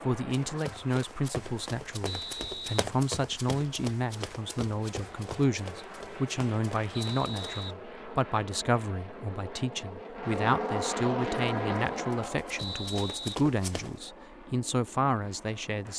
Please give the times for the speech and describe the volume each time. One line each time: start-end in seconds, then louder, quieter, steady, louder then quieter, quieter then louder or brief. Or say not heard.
0.1-15.9 steady.